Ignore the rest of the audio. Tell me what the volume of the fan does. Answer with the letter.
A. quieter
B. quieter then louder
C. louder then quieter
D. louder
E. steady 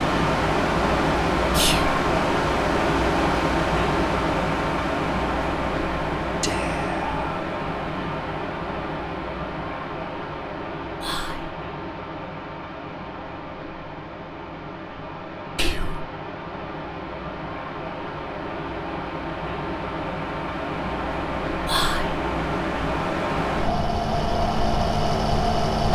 B.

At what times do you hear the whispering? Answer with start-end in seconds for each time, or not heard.
1.5-1.9, 6.4-7.2, 11.0-11.6, 15.6-16.1, 21.6-22.2.